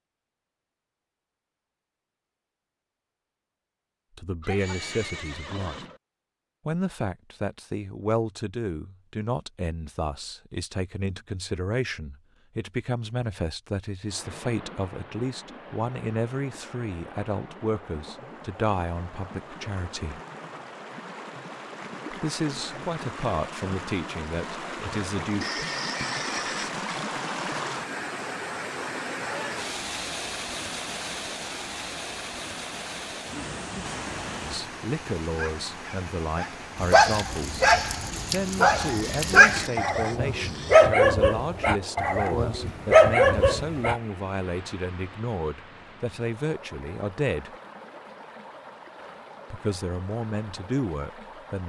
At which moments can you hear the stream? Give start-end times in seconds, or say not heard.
14.1-51.6.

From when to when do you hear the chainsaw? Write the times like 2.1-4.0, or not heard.
not heard.